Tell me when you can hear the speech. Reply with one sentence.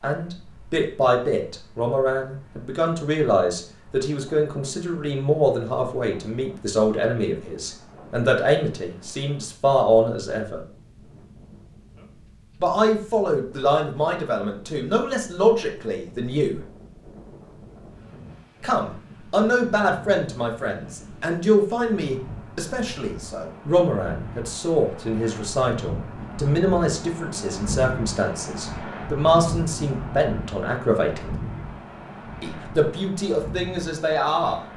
You can hear the speech from 0.0 to 10.6 s, from 12.6 to 16.6 s, from 18.6 to 31.4 s and from 32.4 to 34.6 s.